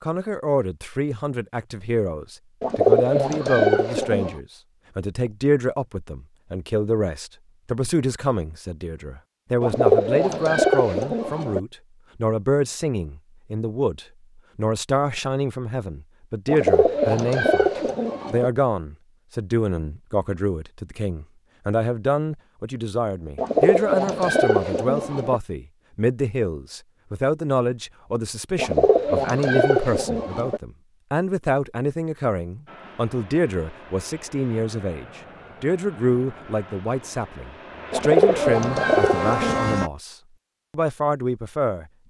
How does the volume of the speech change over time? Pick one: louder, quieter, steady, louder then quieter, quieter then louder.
steady.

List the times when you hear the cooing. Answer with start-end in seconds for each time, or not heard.
2.6-4.3, 9.6-11.6, 16.4-18.5, 23.4-25.4, 28.6-30.6, 37.9-39.7.